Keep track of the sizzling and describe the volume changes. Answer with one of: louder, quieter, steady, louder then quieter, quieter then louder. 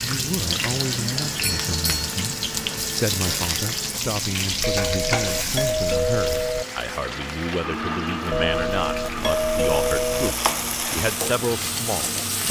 quieter then louder.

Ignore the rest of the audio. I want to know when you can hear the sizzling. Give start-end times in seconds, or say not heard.
0.0-12.4.